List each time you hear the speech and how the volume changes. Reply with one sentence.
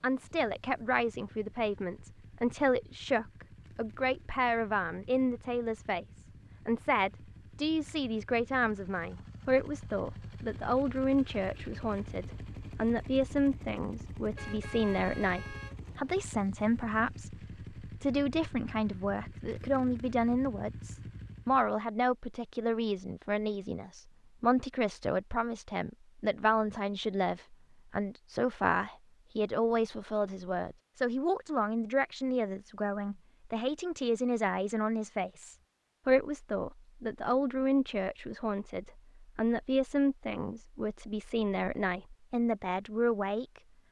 The speech can be heard from 0.0 to 43.6 s, at a steady volume.